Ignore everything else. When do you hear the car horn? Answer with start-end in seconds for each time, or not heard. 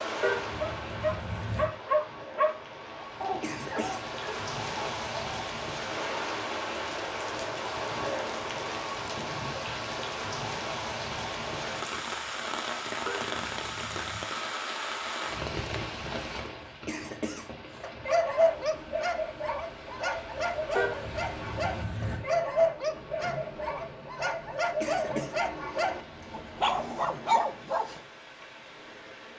0.2-1.6, 13.1-14.2, 20.8-22.2.